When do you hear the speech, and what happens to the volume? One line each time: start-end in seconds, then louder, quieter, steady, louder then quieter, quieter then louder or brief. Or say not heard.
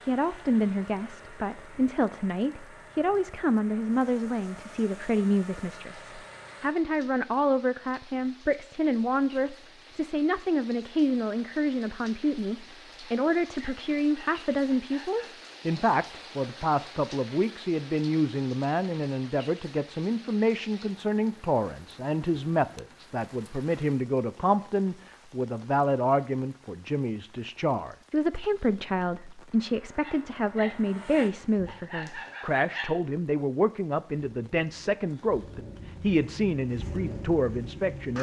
0.1-38.1 steady.